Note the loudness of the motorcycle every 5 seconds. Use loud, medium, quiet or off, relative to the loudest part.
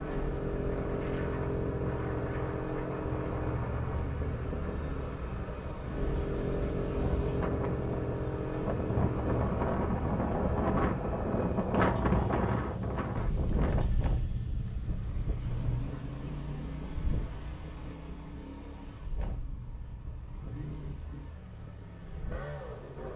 loud, loud, medium, medium, medium.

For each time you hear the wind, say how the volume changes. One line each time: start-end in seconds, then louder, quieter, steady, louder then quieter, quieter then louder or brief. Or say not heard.
0.0-22.9 louder then quieter.